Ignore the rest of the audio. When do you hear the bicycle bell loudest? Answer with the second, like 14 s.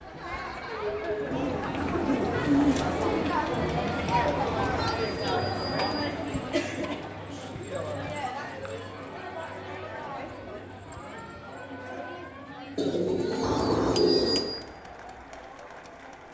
14 s.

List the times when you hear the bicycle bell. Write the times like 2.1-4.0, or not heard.
4.3-6.0, 13.4-14.6.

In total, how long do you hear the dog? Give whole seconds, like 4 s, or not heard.
not heard.